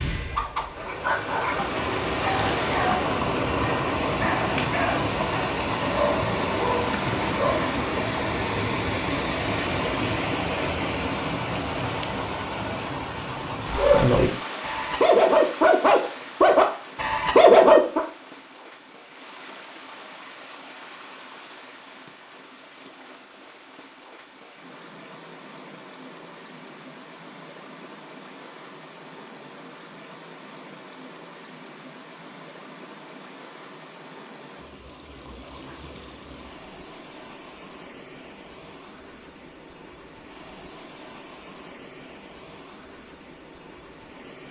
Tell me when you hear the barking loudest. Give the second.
18 s.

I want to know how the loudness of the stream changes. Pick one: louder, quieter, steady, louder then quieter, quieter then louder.
quieter.